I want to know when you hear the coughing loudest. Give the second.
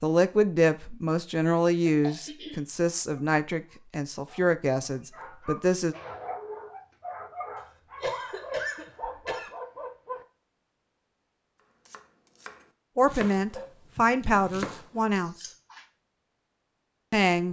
9 s.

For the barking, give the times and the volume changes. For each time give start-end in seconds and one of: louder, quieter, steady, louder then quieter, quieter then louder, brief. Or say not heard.
3.0-10.2 louder.